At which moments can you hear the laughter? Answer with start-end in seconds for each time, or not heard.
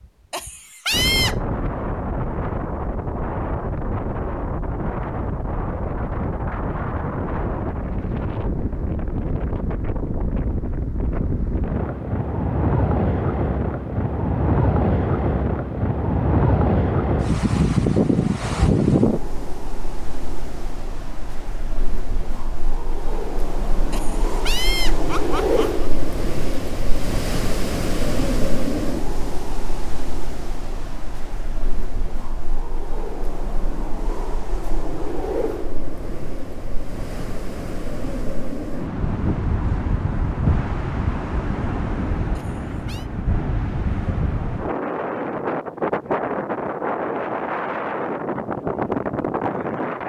0.3-1.4, 23.9-25.9, 42.4-43.1.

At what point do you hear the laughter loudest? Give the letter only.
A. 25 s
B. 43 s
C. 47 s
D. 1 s
D.